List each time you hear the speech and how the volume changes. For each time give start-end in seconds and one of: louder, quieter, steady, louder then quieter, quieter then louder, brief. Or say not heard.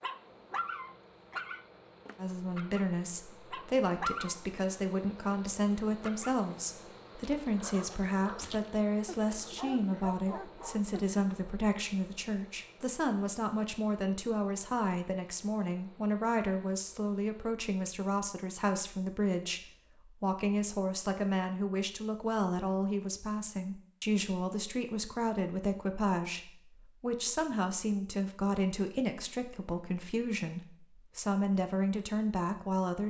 2.1-33.0 steady.